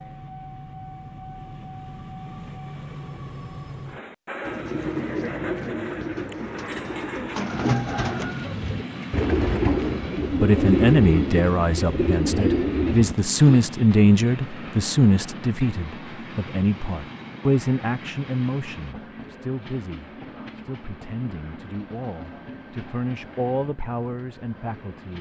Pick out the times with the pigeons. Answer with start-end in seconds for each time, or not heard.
4.5-13.7.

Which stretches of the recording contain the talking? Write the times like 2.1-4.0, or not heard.
10.4-25.1.